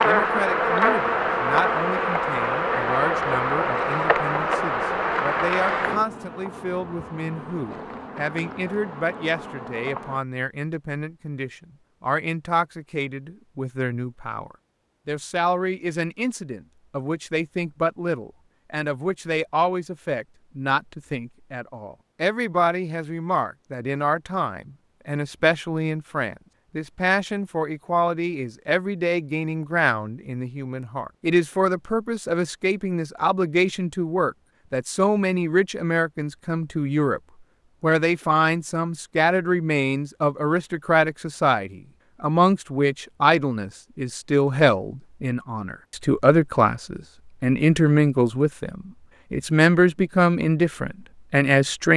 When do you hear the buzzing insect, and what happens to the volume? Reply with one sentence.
You can hear the buzzing insect from 0.0 to 10.2 s, getting quieter.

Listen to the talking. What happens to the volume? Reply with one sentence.
The volume of the talking goes up.